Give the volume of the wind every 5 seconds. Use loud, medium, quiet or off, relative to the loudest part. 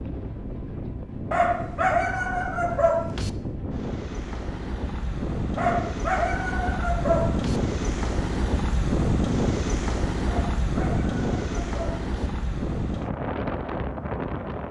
medium, loud, loud.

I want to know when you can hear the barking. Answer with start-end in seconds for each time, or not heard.
1.3-3.3, 5.5-7.6, 10.2-12.1.